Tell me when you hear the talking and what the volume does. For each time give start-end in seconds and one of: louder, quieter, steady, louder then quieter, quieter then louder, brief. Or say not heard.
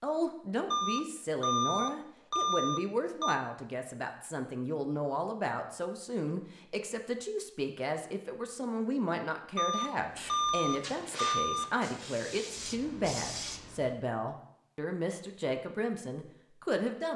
0.0-17.1 steady.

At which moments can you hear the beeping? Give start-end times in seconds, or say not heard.
0.7-3.4, 9.6-11.7.